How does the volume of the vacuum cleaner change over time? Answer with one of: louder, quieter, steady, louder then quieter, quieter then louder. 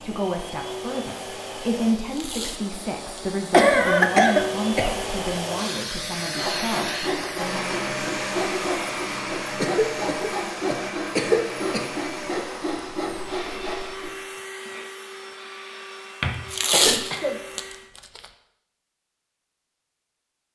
louder then quieter.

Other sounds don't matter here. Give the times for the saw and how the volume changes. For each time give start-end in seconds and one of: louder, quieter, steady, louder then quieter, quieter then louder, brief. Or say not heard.
6.3-14.2 steady.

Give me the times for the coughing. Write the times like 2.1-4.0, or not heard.
3.5-5.0, 9.6-11.8, 16.2-17.4.